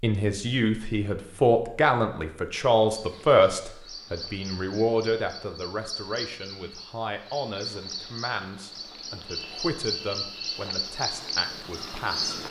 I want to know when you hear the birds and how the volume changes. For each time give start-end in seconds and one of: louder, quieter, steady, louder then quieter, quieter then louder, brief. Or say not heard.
2.9-12.4 louder.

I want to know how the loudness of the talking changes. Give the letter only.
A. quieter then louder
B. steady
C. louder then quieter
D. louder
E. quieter
E.